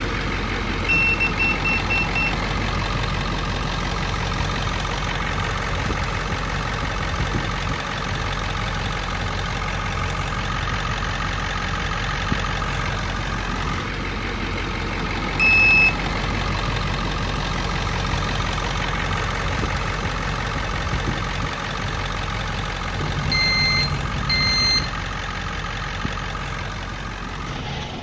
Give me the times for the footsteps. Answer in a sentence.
The footsteps can't be heard in this clip.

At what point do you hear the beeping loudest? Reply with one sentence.
The loudest moment of the beeping is at 16 seconds.